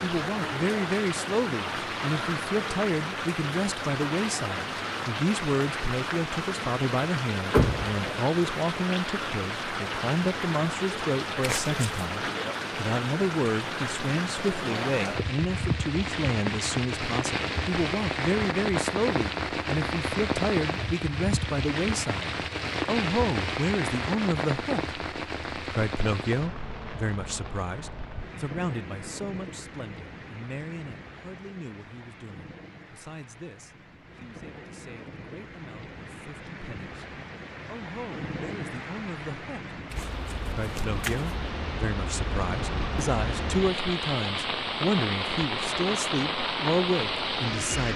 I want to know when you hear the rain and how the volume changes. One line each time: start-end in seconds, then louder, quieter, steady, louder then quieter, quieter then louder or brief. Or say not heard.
0.0-47.9 quieter then louder.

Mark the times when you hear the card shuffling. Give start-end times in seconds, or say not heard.
11.4-12.1, 39.9-41.4.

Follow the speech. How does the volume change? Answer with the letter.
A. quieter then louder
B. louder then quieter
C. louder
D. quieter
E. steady
A.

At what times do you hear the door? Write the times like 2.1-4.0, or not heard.
7.5-8.2.